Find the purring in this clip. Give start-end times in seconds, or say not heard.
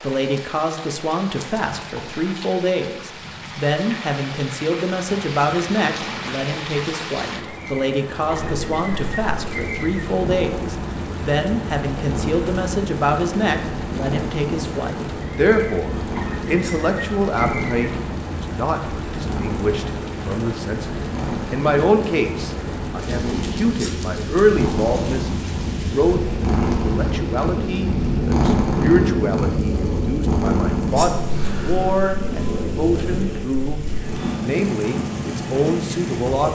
8.3-36.5.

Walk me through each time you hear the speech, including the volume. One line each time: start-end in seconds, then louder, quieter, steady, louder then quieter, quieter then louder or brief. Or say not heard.
0.0-33.8 steady
34.4-36.5 brief.